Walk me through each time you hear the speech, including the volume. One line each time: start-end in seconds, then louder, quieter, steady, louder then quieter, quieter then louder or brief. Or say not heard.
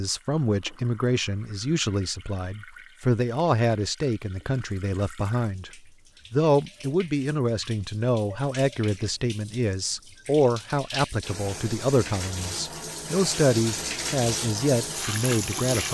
0.0-15.8 steady.